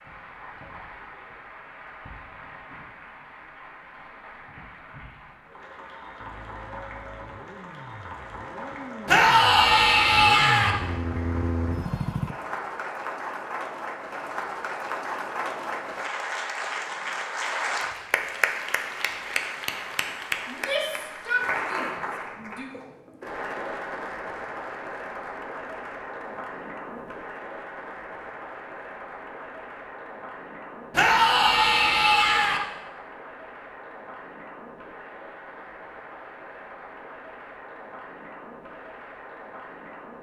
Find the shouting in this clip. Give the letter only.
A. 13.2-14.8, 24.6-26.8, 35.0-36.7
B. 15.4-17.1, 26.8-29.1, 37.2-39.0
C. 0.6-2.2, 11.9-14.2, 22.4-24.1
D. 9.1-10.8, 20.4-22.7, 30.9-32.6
D.